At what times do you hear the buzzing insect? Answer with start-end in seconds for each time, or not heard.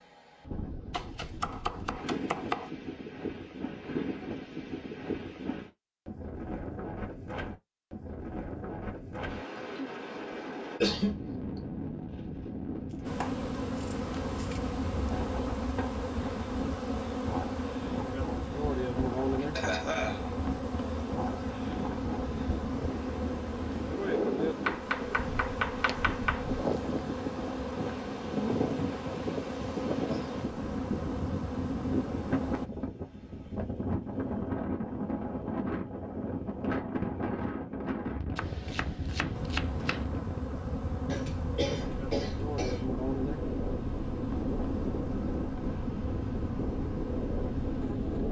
13.1-32.7, 39.3-48.2.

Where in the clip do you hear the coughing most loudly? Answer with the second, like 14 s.
11 s.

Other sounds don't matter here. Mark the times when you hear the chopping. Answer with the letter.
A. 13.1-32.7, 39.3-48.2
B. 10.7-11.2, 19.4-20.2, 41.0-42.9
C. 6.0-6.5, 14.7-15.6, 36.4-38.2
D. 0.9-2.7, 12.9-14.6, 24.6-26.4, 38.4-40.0
D.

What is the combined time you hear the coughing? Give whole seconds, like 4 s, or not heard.
3 s.